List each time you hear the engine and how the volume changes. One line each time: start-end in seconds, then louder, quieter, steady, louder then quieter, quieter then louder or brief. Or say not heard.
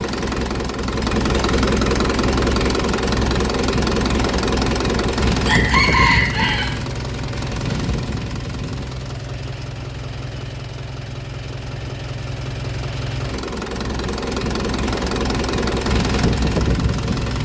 0.0-17.3 quieter then louder.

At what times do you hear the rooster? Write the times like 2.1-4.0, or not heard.
5.4-6.8.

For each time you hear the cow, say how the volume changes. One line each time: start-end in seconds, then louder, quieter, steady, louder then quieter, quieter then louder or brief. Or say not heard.
not heard.